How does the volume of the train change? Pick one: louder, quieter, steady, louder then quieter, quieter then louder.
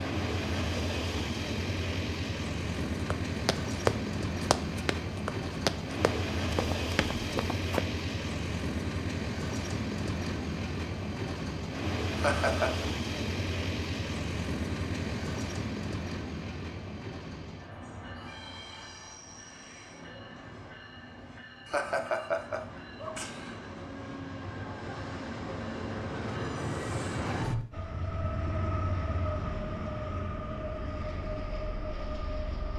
quieter then louder.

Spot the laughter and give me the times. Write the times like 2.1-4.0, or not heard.
12.2-12.8, 21.6-23.6.